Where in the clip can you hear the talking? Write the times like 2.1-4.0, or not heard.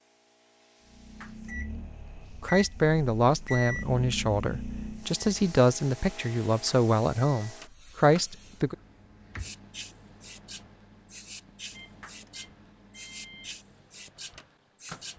2.4-8.8.